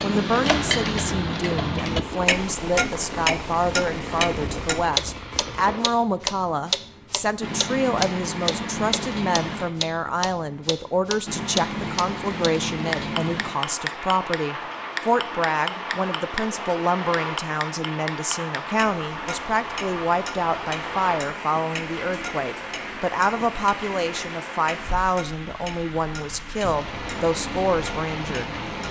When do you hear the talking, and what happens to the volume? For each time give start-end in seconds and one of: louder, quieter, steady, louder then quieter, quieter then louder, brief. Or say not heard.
0.0-28.6 steady.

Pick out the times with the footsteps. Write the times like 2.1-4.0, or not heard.
not heard.